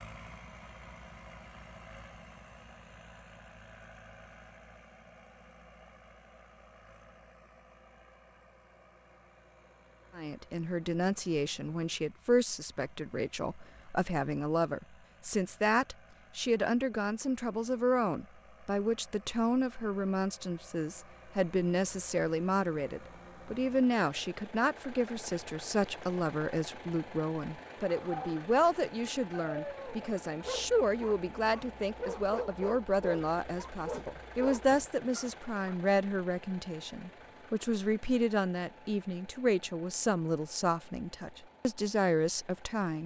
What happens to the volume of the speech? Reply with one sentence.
The volume of the speech stays about the same.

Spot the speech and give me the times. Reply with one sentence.
You can hear the speech from 10.2 to 43.0 s.